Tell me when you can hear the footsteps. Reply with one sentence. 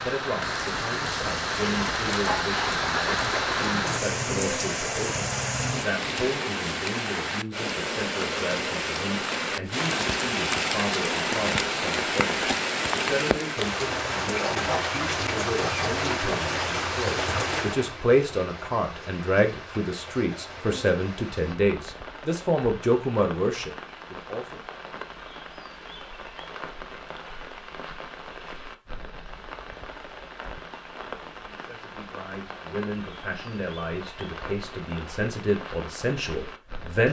The footsteps can't be heard in this clip.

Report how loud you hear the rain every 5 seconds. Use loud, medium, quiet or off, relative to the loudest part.
loud, loud, loud, loud, quiet, quiet, quiet, quiet.